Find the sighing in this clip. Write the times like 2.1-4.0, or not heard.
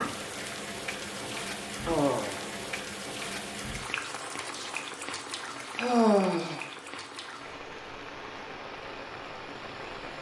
1.0-2.6, 5.8-6.6.